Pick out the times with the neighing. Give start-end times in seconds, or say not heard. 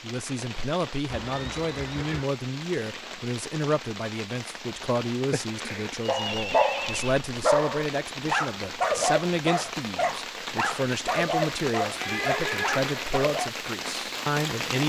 1.1-2.2, 6.2-7.2, 11.9-13.2.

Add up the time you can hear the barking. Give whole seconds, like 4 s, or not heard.
8 s.